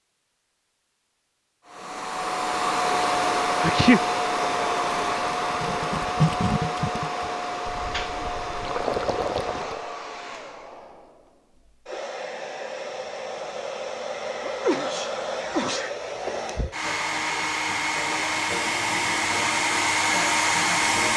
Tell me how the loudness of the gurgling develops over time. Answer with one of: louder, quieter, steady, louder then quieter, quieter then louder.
quieter then louder.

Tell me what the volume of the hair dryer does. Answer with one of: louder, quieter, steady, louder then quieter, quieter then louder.
quieter then louder.